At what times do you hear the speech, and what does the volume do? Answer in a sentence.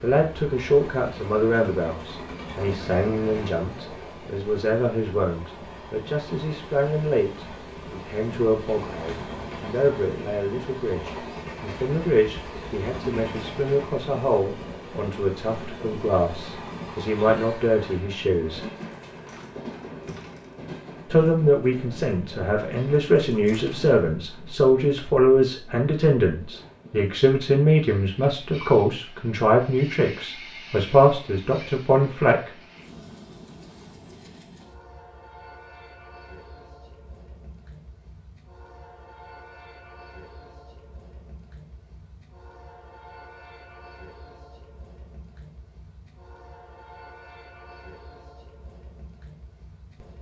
The speech can be heard from 0.0 to 18.6 s, at a steady volume; and from 21.1 to 32.5 s, at a steady volume.